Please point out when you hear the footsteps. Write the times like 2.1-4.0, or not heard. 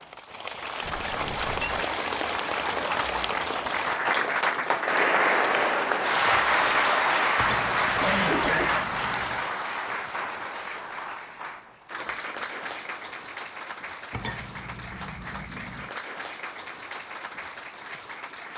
not heard.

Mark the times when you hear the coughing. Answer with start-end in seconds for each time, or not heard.
8.0-8.8.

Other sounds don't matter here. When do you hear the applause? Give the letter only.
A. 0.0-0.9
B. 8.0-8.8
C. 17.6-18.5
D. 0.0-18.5
D.